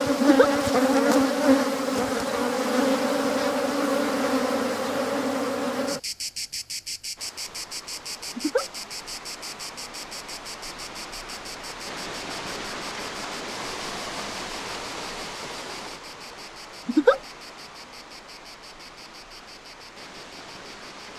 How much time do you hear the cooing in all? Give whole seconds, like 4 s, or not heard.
not heard.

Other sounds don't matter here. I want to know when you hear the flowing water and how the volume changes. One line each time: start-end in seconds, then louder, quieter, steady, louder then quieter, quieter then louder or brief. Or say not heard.
7.2-21.1 louder then quieter.